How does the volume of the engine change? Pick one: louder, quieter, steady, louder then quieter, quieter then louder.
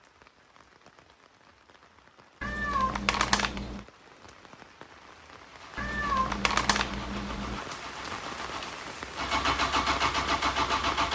louder.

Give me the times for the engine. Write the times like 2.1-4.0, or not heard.
5.5-11.0.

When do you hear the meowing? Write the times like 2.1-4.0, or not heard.
2.4-3.9, 5.8-7.7.